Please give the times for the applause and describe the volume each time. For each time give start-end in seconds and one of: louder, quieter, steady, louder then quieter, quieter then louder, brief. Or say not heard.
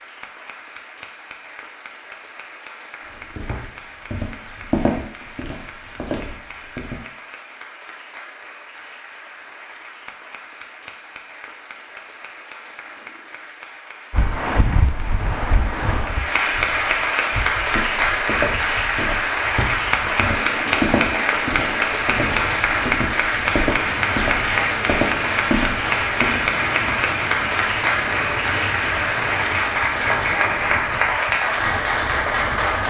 0.0-32.8 louder.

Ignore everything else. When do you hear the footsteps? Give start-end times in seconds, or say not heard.
3.1-7.0, 17.6-26.9.